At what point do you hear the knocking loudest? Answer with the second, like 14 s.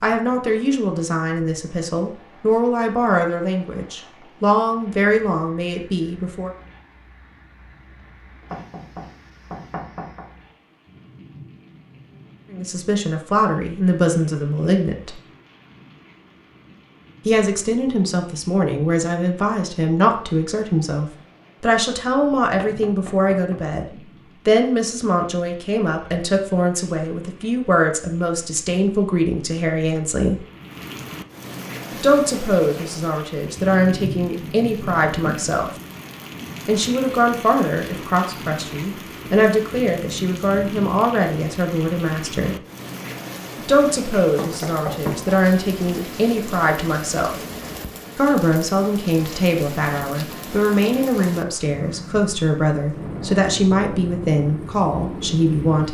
45 s.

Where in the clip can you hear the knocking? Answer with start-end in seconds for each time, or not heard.
8.5-10.2, 22.6-23.6, 44.4-45.4.